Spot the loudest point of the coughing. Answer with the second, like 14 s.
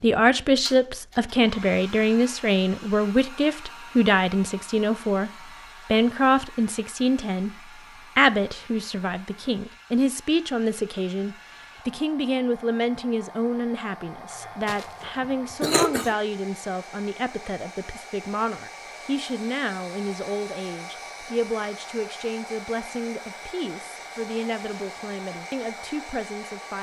16 s.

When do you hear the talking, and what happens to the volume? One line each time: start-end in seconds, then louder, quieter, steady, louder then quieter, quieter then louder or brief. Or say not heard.
0.0-26.7 quieter.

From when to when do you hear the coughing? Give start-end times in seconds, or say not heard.
14.3-16.1.